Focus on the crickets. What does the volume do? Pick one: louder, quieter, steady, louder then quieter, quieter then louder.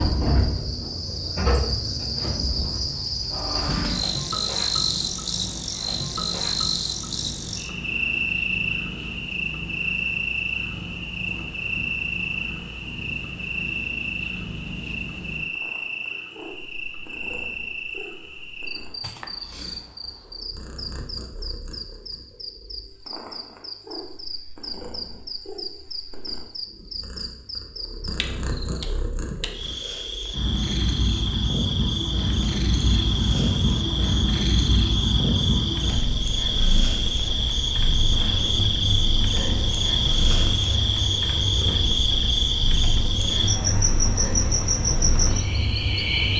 quieter then louder.